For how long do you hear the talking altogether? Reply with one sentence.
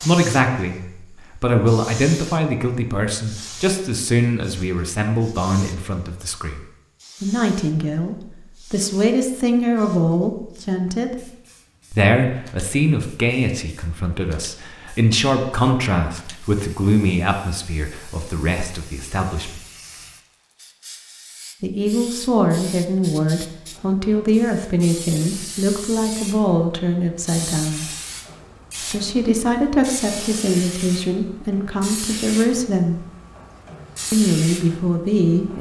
You can hear the talking for 31 seconds altogether.